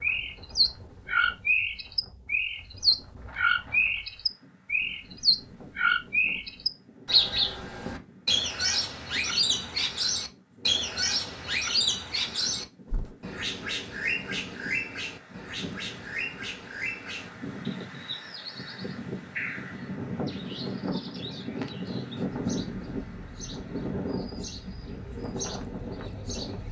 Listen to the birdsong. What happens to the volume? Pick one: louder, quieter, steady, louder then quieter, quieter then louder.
quieter.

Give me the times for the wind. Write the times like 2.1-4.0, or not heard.
0.0-26.6.